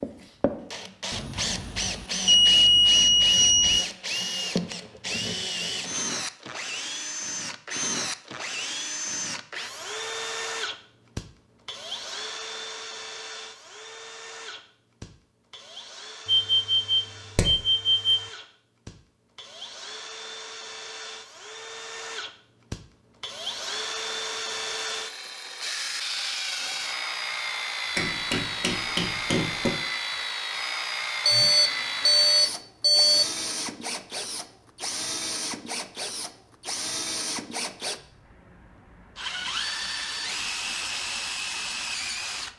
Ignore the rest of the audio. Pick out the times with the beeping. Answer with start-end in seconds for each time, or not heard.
1.1-3.9, 16.2-18.2, 31.2-33.2.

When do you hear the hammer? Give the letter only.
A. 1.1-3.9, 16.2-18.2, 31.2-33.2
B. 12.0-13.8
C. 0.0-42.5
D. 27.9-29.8
D.